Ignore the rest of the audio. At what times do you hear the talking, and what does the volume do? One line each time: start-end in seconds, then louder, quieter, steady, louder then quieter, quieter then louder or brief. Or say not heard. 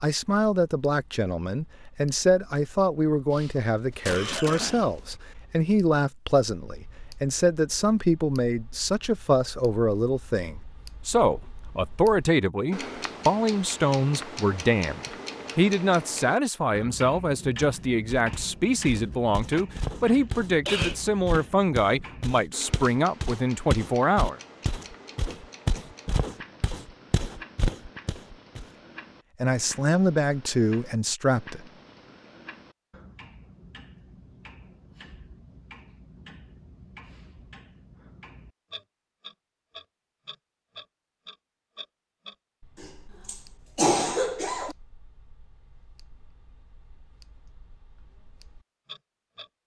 0.0-24.4 steady
29.4-31.6 brief.